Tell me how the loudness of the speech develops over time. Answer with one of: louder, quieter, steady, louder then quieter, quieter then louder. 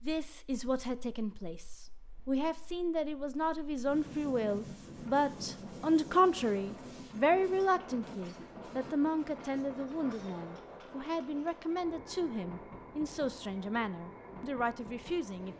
louder then quieter.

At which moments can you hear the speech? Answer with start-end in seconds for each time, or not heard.
0.0-15.5.